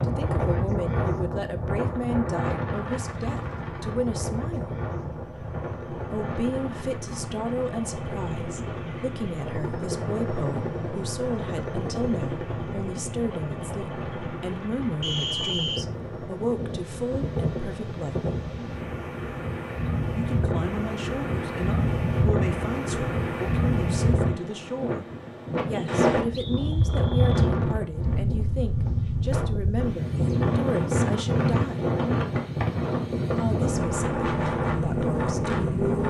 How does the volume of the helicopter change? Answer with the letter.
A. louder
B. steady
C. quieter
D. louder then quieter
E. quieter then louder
D.